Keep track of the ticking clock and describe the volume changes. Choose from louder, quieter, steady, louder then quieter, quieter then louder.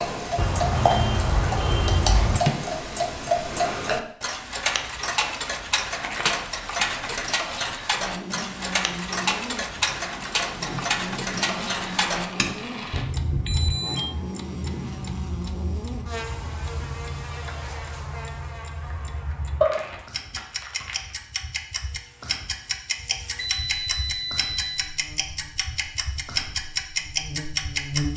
quieter then louder.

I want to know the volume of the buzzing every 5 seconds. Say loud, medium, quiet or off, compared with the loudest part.
off, loud, loud, loud, quiet, loud.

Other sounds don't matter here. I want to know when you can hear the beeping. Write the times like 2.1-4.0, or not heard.
0.3-2.4, 13.4-14.2, 23.4-24.9.